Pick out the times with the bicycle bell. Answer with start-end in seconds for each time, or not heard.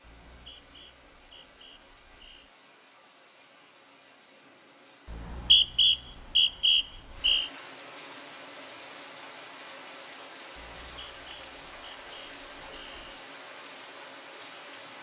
not heard.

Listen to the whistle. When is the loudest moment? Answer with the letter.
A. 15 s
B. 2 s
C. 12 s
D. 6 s
D.